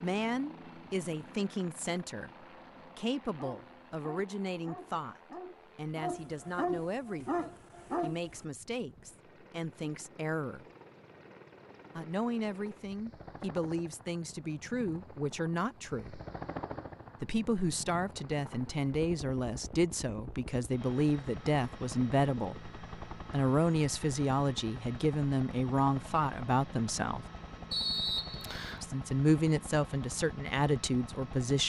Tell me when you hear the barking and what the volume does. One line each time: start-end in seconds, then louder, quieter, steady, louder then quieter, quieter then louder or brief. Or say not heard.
3.3-8.4 louder.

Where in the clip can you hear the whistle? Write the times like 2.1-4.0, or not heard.
27.7-28.9.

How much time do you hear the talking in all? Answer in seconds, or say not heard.
28 s.